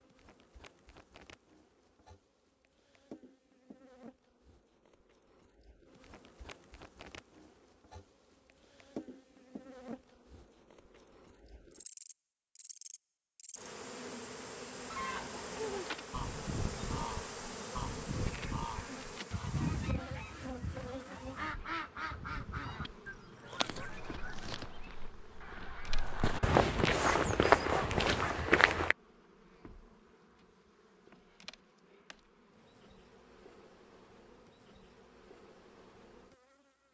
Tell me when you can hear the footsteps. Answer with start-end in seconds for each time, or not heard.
23.9-28.9.